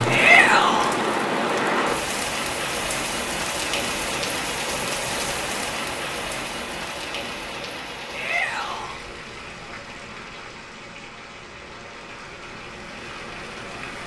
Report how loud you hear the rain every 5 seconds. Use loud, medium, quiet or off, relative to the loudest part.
loud, medium, quiet.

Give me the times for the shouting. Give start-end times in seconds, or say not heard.
0.1-0.9, 8.1-8.9.